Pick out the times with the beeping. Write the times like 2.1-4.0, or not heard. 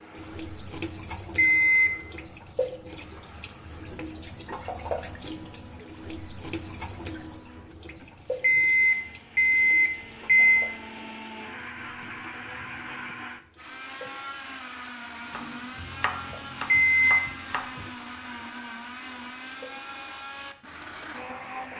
1.4-1.9, 8.4-10.7, 16.6-17.2.